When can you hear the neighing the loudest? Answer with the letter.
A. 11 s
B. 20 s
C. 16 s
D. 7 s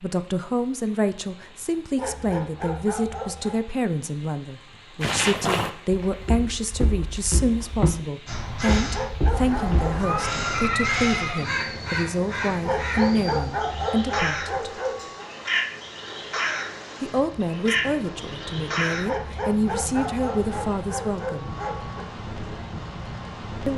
A.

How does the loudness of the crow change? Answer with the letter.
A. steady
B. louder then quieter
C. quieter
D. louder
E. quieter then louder
A.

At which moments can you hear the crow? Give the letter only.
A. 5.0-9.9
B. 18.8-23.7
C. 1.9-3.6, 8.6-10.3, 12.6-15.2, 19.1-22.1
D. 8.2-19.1
D.